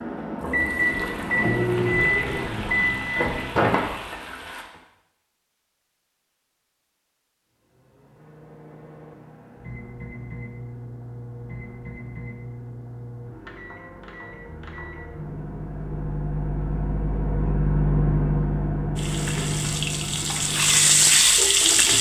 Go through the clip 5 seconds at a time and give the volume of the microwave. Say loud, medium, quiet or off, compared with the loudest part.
loud, quiet, quiet, loud, medium.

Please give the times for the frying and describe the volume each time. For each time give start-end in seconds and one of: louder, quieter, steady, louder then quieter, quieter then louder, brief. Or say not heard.
0.2-4.7 steady
18.9-21.9 brief.